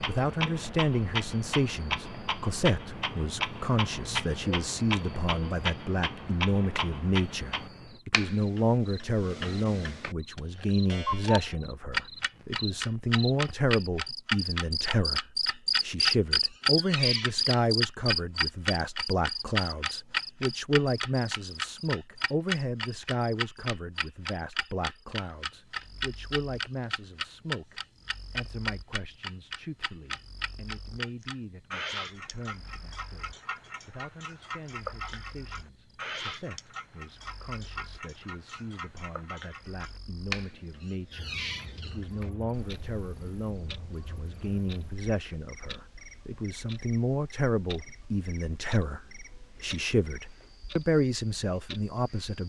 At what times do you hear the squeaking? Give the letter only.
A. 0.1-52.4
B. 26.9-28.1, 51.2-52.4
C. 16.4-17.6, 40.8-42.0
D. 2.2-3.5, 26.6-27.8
C.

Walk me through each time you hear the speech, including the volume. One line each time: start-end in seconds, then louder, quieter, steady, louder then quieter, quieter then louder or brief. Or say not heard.
0.1-52.4 quieter then louder.